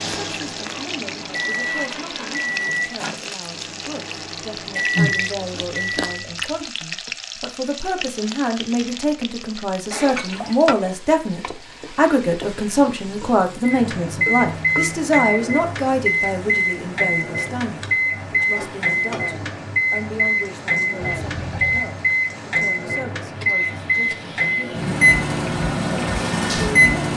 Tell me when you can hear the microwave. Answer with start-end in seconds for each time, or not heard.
0.0-6.2, 13.7-27.1.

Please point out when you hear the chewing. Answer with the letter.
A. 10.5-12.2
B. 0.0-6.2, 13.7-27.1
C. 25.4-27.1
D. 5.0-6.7
D.